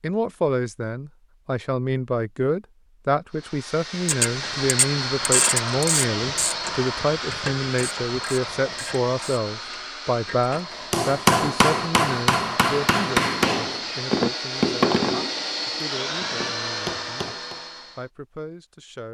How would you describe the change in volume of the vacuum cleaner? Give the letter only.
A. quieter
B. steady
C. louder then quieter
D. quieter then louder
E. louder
D.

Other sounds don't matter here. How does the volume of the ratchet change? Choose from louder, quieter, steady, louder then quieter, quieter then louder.
quieter.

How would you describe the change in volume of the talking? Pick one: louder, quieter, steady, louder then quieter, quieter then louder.
quieter.